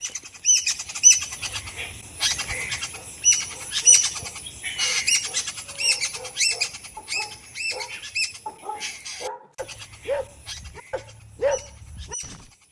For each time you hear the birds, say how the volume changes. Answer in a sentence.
You can hear the birds from 0.0 to 12.6 s, getting quieter.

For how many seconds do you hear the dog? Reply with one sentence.
You can hear the dog for 11 seconds altogether.